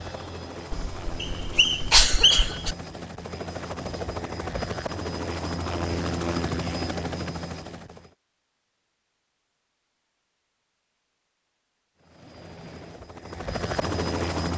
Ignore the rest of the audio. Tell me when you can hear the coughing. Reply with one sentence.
The coughing can be heard from 0.7 to 2.8 s.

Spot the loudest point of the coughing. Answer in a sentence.
The loudest moment of the coughing is at 2 seconds.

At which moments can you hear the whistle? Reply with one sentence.
You can hear the whistle from 1.2 to 2.6 s.